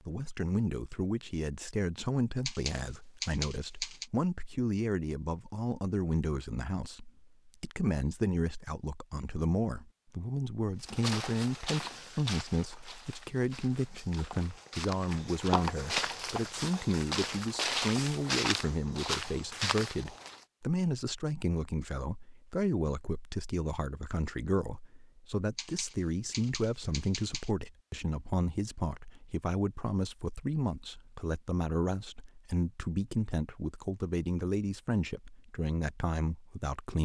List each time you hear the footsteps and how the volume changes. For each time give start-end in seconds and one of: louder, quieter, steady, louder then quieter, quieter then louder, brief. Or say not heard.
10.8-20.4 quieter then louder.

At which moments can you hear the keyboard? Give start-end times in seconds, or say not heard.
2.5-4.1, 25.6-27.5.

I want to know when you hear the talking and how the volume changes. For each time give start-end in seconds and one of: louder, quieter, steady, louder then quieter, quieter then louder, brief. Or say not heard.
0.1-37.0 steady.